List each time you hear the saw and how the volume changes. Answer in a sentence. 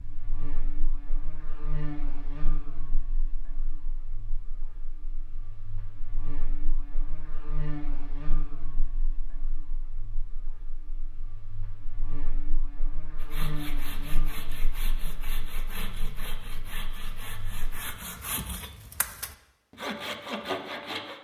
You can hear the saw from 13.2 to 21.1 s, getting louder.